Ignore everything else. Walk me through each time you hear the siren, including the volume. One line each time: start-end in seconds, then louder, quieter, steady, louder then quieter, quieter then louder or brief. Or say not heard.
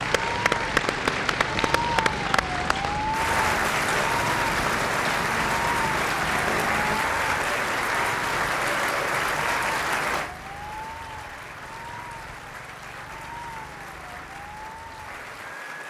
0.0-15.7 quieter.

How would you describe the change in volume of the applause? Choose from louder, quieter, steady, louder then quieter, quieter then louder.
quieter.